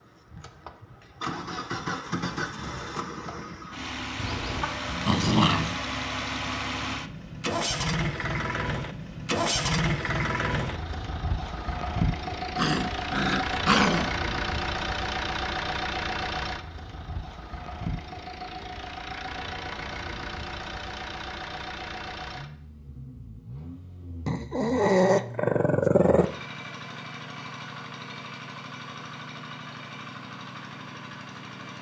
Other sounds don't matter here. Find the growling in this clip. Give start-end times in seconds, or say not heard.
4.2-5.8, 12.6-14.1, 24.2-26.2.